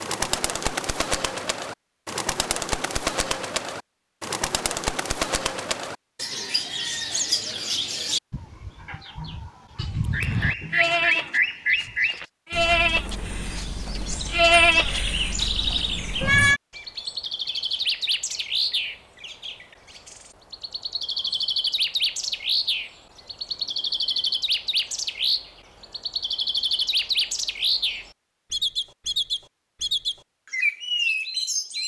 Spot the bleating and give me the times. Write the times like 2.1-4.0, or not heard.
9.8-16.6.